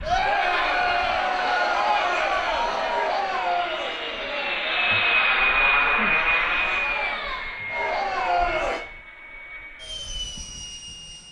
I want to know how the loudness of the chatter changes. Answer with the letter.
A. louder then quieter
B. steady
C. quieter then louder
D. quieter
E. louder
C.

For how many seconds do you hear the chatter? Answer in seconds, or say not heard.
9 s.